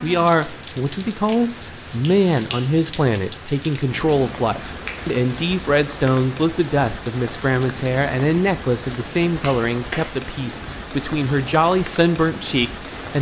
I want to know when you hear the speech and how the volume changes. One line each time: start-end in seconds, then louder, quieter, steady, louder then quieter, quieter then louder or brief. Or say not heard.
0.0-13.1 steady.